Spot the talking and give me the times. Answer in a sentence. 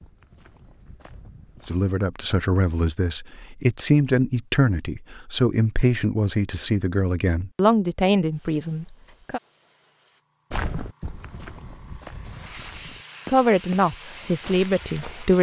You can hear the talking from 1.6 to 9.4 s and from 13.2 to 15.3 s.